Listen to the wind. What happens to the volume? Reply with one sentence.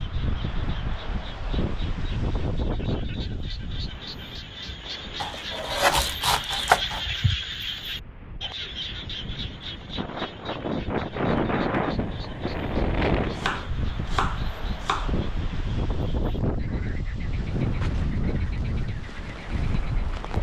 The loudness of the wind goes down, then up.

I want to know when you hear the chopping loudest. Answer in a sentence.
The loudest moment of the chopping is at 7 seconds.